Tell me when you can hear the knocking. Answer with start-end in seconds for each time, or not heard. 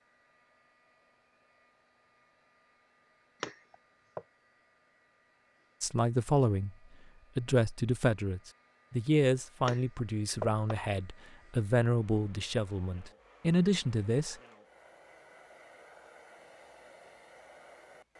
3.4-4.2, 9.7-10.8.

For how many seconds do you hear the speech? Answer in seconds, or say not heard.
8 s.